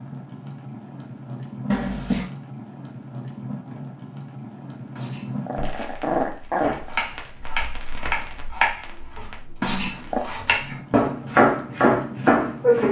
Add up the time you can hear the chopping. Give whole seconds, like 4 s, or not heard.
6 s.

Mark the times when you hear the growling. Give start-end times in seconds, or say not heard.
1.7-2.3, 5.0-7.0, 9.6-10.2.